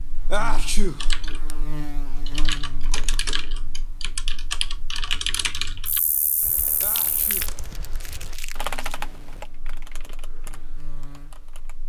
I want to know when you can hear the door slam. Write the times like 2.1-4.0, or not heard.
not heard.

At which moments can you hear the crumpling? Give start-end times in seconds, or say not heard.
2.1-3.3, 6.5-9.0.